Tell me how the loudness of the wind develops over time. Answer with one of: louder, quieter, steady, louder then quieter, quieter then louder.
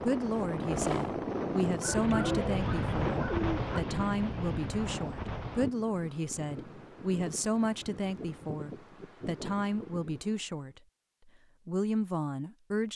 quieter.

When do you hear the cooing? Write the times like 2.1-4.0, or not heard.
1.8-3.8.